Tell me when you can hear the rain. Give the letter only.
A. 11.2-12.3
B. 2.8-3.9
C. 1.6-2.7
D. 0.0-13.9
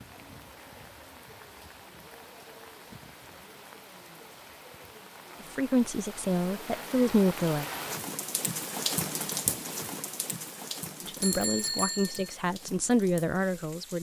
D.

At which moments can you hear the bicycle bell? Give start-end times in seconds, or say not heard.
11.2-12.3.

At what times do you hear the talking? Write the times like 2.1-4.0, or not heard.
5.5-7.7, 11.0-13.9.